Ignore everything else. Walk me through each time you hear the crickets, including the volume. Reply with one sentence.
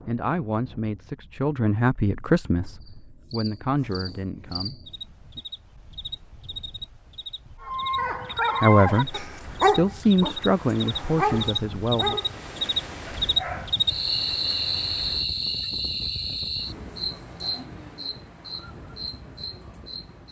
The crickets can be heard from 2.8 to 20.2 s, getting louder then quieter.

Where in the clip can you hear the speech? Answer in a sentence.
You can hear the speech from 0.1 to 5.4 s and from 8.6 to 12.2 s.